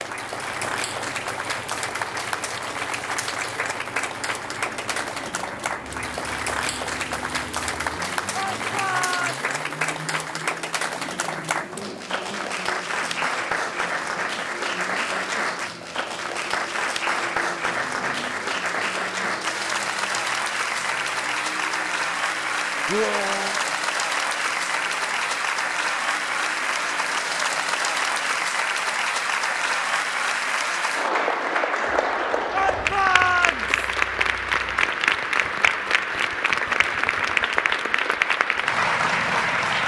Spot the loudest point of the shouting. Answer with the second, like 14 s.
33 s.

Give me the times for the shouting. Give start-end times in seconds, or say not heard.
8.3-9.4, 22.9-23.6, 32.5-33.7.